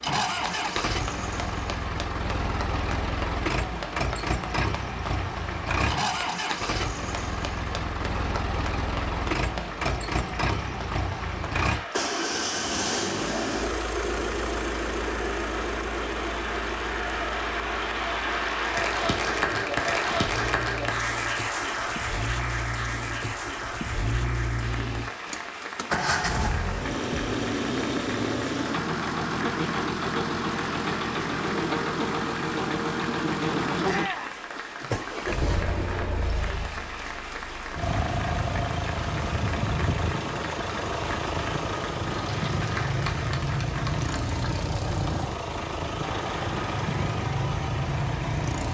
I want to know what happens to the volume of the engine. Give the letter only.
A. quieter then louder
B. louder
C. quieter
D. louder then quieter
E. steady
E.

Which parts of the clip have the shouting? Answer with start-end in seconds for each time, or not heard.
33.9-34.4.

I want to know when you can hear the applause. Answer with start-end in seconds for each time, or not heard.
0.0-48.6.